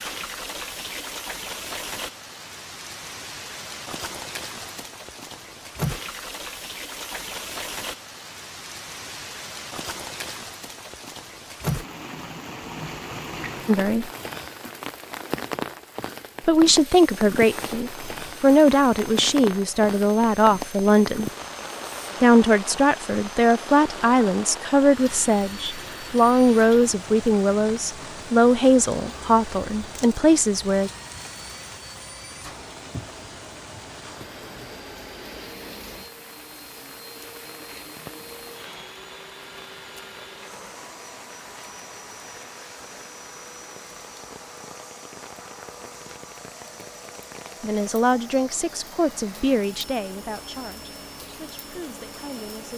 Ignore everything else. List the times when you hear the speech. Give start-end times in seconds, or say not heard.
13.7-14.1, 16.4-21.3, 22.2-30.9, 47.6-52.7.